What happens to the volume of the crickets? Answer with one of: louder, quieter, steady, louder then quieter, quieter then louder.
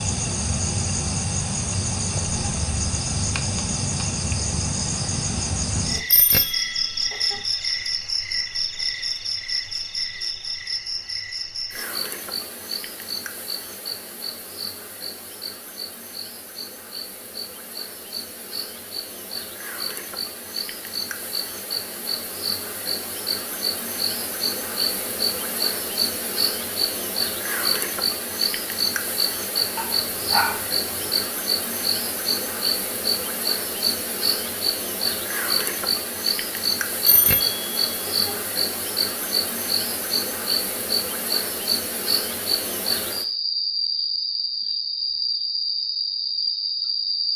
quieter then louder.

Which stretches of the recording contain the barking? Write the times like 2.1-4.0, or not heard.
29.8-31.1.